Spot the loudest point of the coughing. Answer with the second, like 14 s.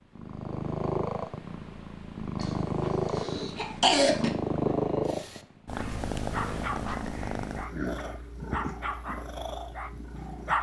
4 s.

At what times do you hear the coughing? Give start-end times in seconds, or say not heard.
2.4-4.3.